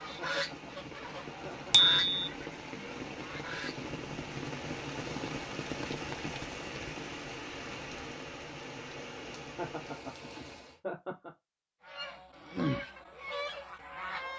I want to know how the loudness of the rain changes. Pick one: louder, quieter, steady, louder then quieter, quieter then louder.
louder then quieter.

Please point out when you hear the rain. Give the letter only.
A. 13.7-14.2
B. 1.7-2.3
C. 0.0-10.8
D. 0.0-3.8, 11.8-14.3
C.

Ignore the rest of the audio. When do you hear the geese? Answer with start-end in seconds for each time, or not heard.
0.0-3.8, 11.8-14.3.